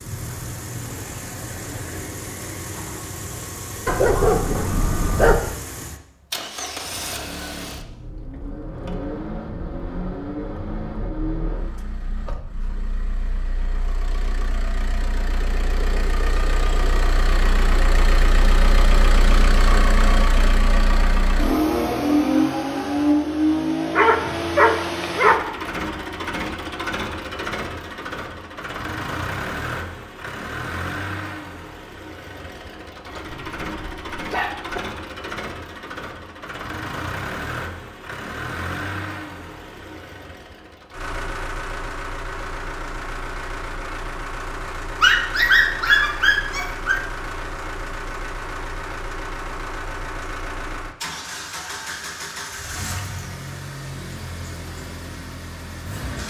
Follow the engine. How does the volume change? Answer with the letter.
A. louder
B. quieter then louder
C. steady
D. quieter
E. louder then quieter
E.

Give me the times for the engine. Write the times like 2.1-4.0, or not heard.
0.0-56.2.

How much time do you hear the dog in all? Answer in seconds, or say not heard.
7 s.